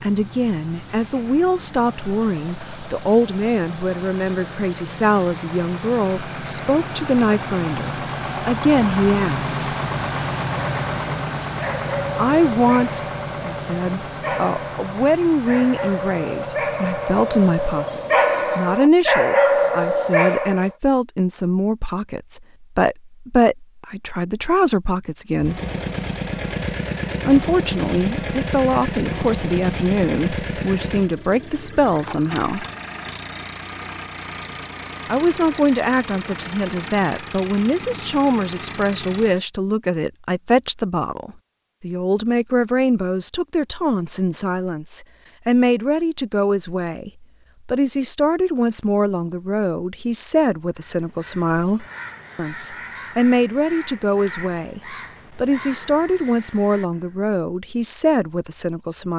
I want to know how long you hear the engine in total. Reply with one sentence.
The engine can be heard for 32 seconds in total.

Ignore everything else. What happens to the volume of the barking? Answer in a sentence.
The loudness of the barking goes up.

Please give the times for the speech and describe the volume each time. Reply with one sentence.
The speech can be heard from 0.0 to 9.6 s, at a steady volume; from 12.2 to 25.6 s, at a steady volume; from 27.2 to 32.6 s, at a steady volume; and from 35.0 to 59.1 s, at a steady volume.